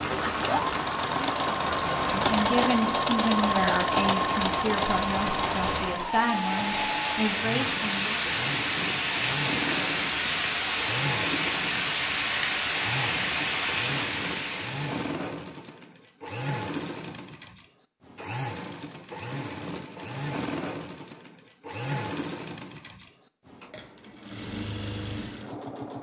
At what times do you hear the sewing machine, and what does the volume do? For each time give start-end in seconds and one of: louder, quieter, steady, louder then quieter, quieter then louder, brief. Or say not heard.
0.0-25.9 quieter.